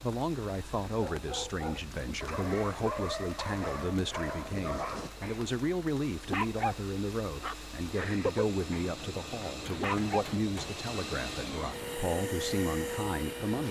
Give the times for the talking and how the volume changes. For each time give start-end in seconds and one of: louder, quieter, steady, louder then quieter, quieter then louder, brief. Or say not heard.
0.0-13.6 steady.